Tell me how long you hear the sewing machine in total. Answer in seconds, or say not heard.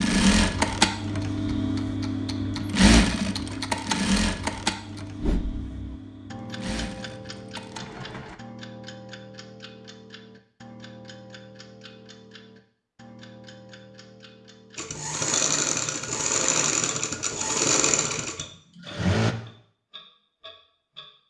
13 s.